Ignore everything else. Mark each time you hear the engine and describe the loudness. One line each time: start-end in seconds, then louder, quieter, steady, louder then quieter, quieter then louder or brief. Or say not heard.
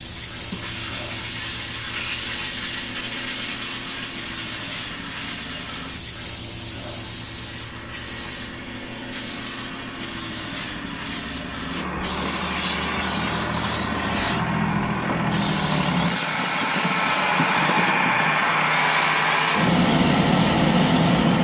0.0-21.3 louder.